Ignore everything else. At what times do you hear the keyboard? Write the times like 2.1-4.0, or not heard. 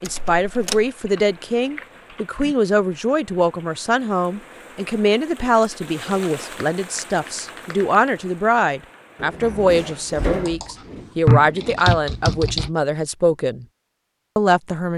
1.1-2.5, 6.0-8.0, 10.2-12.7.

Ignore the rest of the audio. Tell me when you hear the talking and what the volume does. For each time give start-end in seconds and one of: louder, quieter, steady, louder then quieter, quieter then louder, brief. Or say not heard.
0.0-13.7 steady
14.3-14.9 brief.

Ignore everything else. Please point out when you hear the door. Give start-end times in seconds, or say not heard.
0.1-0.8, 9.2-10.6.